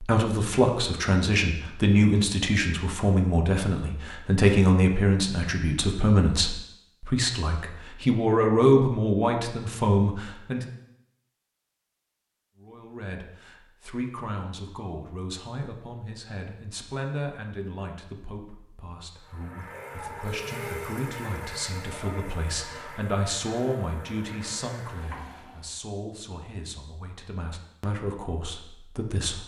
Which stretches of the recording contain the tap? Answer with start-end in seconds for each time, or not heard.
19.1-25.8.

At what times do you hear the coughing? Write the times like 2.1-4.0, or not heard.
not heard.